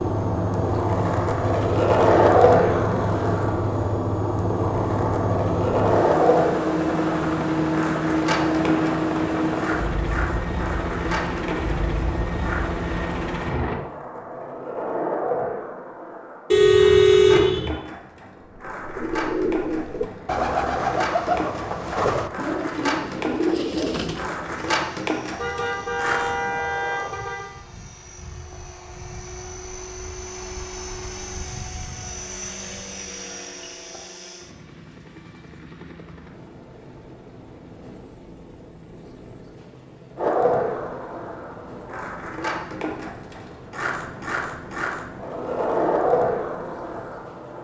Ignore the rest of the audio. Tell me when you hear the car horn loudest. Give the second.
17 s.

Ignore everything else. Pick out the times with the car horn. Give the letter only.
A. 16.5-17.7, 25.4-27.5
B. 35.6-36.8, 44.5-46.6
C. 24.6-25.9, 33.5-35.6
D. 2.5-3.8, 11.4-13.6
A.